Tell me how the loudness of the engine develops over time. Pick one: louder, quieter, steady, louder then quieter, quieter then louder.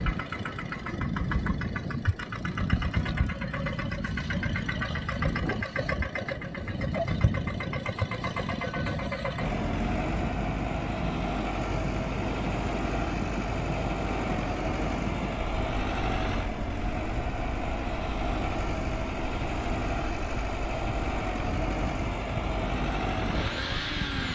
steady.